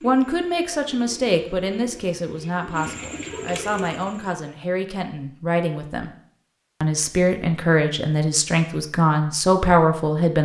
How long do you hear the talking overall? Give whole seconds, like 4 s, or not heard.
10 s.